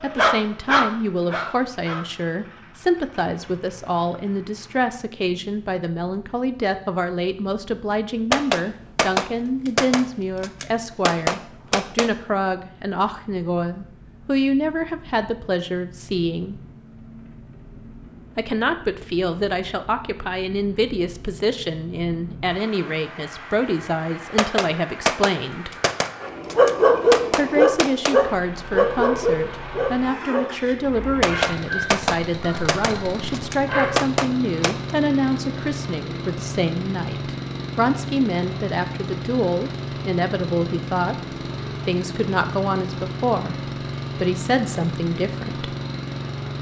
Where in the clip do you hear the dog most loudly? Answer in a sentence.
The volume of the dog peaks at 27 seconds.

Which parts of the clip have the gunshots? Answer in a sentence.
You can hear the gunshots from 8.3 to 12.1 s, from 24.4 to 28.1 s and from 31.2 to 35.0 s.